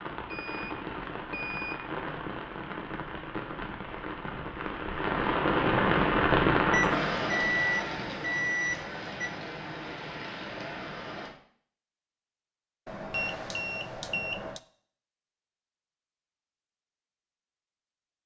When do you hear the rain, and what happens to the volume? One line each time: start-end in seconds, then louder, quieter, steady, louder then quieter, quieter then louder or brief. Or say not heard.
0.0-11.3 louder then quieter.